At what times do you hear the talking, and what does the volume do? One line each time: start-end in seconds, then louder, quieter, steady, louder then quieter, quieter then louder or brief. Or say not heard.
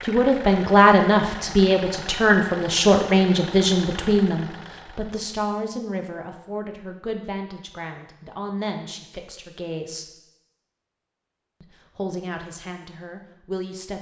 0.1-10.1 quieter
11.6-13.9 brief.